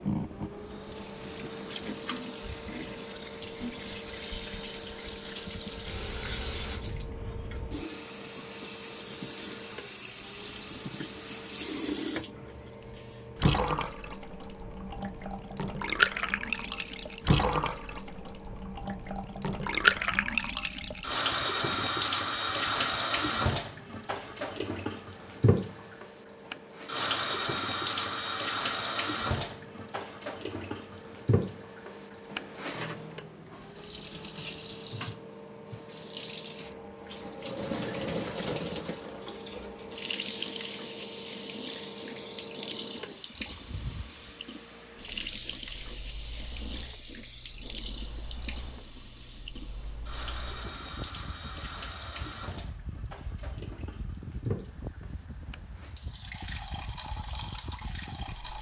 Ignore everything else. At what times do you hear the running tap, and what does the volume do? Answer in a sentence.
The running tap can be heard from 0.0 to 58.5 s, getting louder then quieter.